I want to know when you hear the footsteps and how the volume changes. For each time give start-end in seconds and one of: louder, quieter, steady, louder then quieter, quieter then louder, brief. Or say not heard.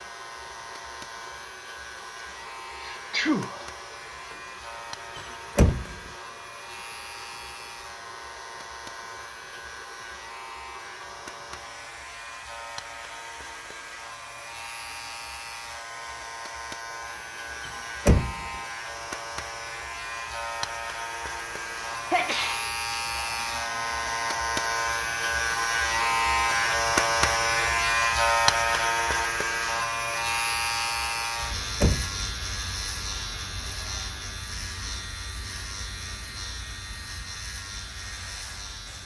not heard.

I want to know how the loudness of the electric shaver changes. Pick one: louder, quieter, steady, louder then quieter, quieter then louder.
louder then quieter.